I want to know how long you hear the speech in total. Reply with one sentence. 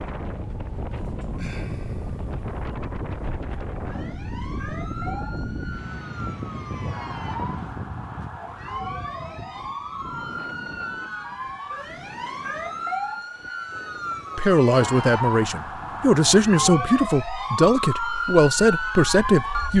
You can hear the speech for 5 seconds altogether.